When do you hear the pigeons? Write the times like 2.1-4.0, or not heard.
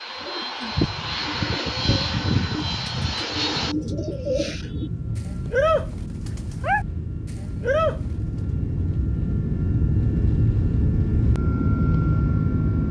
0.1-6.8, 7.6-8.0.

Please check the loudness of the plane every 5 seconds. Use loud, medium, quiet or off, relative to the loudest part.
medium, medium, loud.